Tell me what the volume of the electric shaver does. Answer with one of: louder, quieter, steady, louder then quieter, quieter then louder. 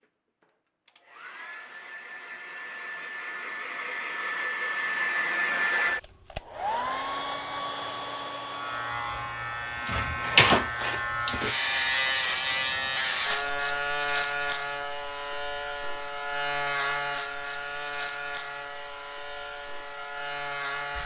quieter.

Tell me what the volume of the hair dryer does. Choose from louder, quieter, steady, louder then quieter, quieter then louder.
louder then quieter.